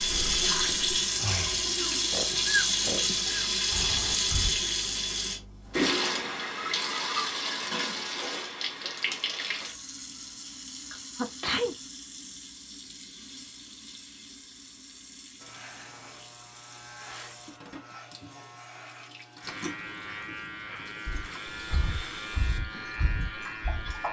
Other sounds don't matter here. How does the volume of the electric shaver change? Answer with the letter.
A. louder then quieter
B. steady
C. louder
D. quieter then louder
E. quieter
C.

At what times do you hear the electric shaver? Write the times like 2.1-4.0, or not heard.
15.4-24.0.